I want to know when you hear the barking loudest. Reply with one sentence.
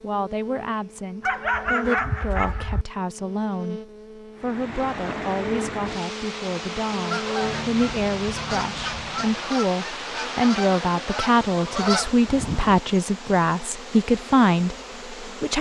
The volume of the barking peaks at 2 seconds.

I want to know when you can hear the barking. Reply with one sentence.
You can hear the barking from 1.2 to 2.9 s.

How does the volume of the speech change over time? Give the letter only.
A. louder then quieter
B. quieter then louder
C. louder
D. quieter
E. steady
C.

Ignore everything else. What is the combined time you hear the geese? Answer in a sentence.
You can hear the geese for 6 seconds altogether.